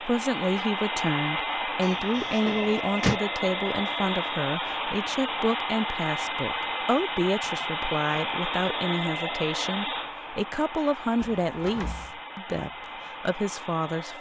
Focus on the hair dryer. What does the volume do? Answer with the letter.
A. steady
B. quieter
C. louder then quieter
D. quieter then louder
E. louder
B.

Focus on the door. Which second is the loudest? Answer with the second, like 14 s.
3 s.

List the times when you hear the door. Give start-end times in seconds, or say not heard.
1.8-3.2, 11.2-12.2.